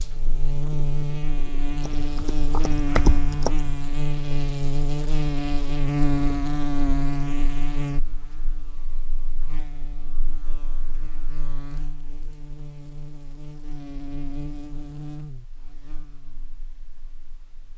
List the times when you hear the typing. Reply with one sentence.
You can hear the typing from 1.8 to 3.7 s.